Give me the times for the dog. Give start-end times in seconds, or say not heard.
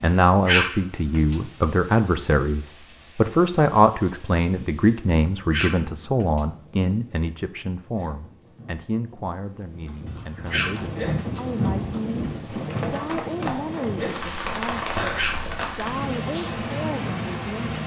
0.0-1.4, 5.0-6.5, 10.1-11.4, 14.7-16.1.